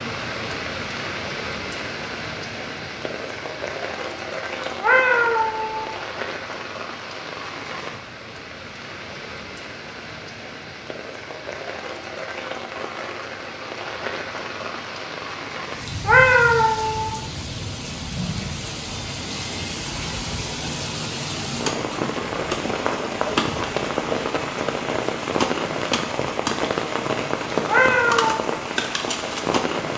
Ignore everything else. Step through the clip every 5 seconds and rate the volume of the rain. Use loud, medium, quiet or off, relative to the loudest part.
medium, medium, medium, medium, loud, loud.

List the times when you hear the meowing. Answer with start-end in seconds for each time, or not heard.
4.6-6.0, 15.8-17.2, 27.5-28.4.